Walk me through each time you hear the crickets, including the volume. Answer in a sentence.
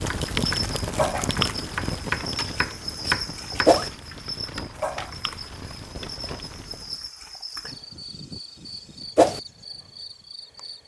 You can hear the crickets from 0.1 to 10.8 s, getting quieter.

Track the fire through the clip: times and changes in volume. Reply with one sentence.
The fire can be heard from 0.0 to 7.1 s, getting quieter.